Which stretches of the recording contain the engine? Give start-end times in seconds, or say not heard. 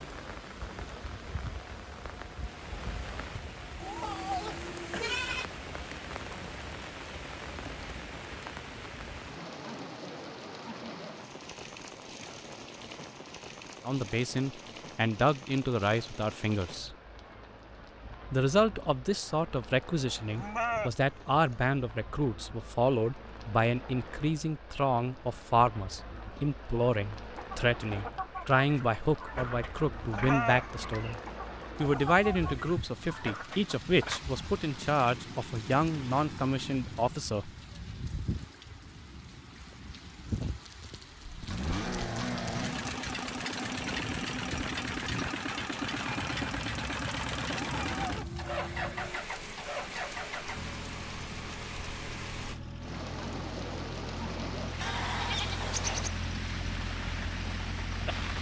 41.1-58.3.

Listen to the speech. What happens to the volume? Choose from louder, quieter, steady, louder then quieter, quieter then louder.
steady.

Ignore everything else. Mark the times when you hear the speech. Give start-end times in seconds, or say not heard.
13.8-16.9, 18.3-31.2, 31.8-37.5.